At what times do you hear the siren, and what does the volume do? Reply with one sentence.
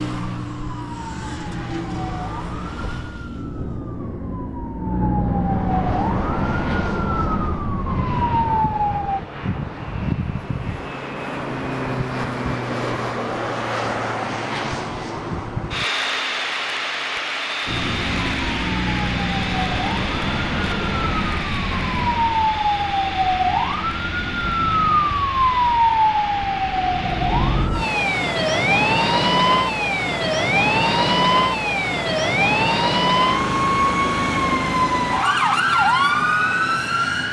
You can hear the siren from 0.0 to 9.2 s, getting louder; and from 17.6 to 37.2 s, getting louder.